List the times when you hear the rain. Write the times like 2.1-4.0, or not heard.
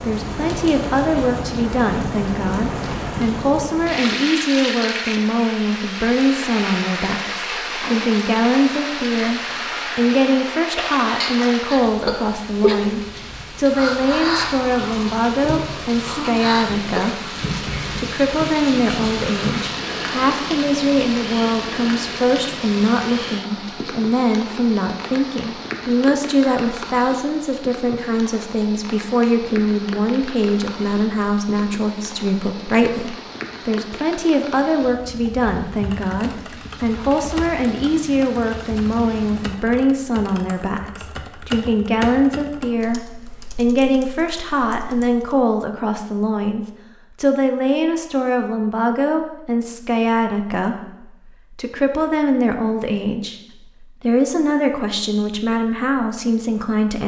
0.0-39.6.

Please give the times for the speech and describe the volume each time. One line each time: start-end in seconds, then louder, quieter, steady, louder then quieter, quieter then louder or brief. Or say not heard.
0.0-57.0 steady.